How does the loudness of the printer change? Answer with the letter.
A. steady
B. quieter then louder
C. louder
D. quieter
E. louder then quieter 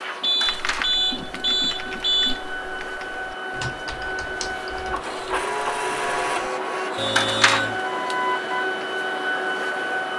C.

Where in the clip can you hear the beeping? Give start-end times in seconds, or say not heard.
0.2-2.5, 7.0-8.7.